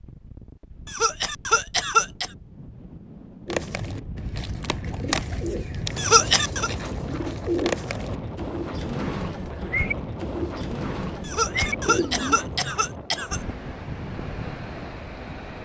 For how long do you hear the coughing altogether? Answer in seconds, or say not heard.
4 s.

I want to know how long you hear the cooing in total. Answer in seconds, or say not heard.
9 s.